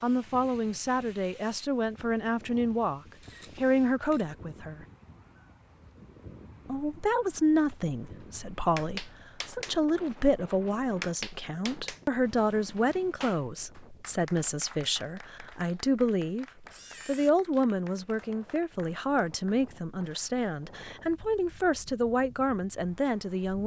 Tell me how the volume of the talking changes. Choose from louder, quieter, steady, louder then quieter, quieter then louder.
steady.